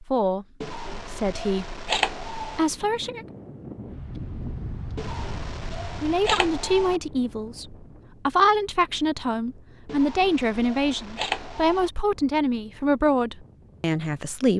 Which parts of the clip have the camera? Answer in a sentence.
The camera can be heard from 0.6 to 2.6 s, from 5.0 to 7.0 s and from 9.8 to 11.9 s.